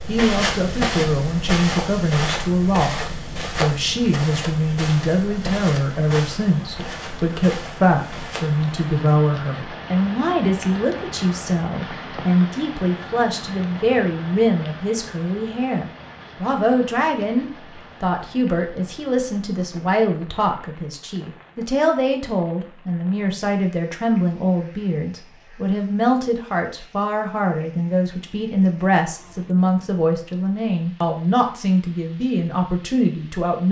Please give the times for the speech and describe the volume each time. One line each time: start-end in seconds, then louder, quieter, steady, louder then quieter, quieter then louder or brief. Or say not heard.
0.1-33.6 steady.